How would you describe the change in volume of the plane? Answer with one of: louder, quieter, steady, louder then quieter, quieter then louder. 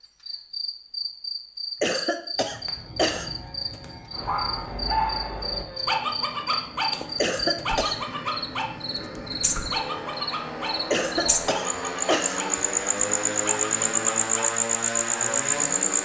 louder.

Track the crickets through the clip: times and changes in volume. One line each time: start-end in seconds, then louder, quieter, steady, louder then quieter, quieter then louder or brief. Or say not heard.
0.0-16.0 louder.